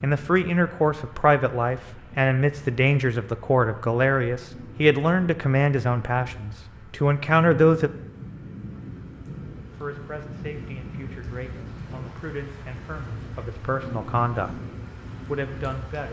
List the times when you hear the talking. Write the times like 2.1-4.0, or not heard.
0.0-7.9, 9.7-14.5, 15.2-16.0.